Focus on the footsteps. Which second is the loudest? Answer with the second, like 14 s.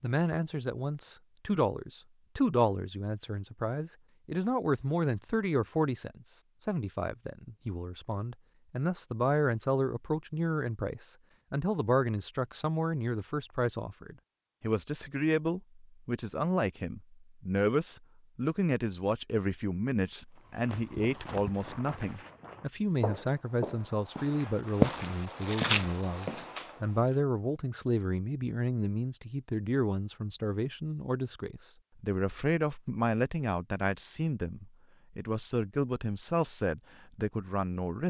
25 s.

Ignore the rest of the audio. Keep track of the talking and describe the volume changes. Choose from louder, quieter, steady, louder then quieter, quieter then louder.
steady.